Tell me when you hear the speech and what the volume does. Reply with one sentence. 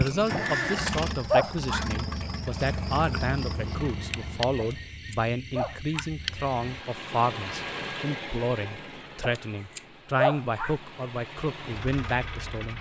You can hear the speech from 0.0 to 12.7 s, at a steady volume.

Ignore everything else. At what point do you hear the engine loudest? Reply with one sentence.
The loudest moment of the engine is at 1 second.